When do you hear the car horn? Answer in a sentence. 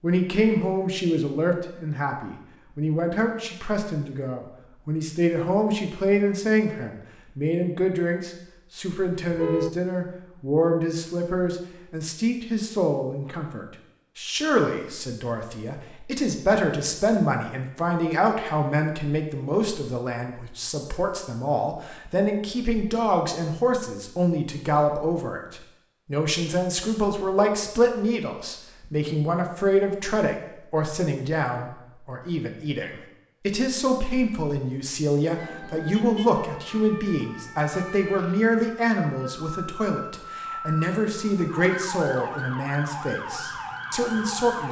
You can hear the car horn from 9.3 to 9.8 s and from 35.9 to 36.4 s.